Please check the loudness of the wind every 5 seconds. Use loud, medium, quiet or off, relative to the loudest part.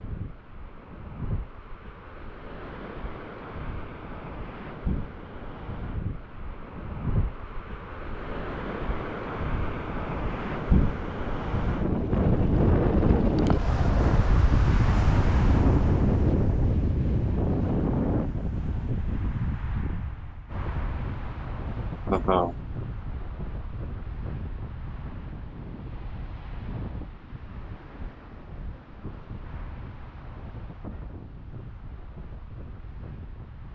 quiet, medium, loud, loud, quiet, quiet, quiet.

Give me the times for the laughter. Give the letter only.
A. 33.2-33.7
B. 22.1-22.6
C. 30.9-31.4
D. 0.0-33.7
B.